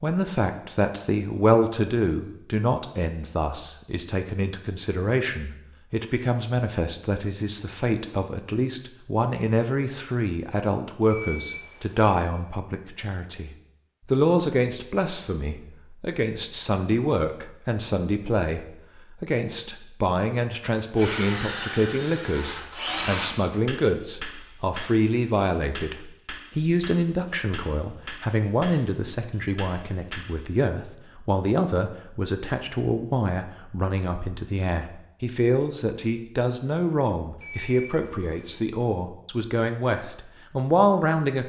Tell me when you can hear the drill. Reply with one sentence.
The drill can be heard from 20.9 to 23.3 s.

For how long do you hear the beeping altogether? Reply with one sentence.
You can hear the beeping for 2 seconds altogether.